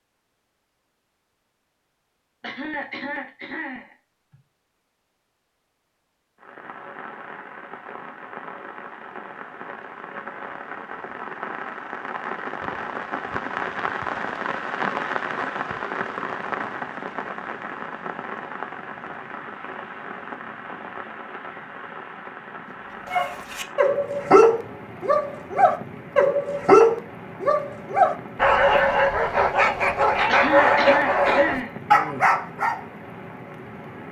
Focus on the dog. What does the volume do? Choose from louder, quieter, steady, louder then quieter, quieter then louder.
steady.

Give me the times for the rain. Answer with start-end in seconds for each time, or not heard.
6.3-34.0.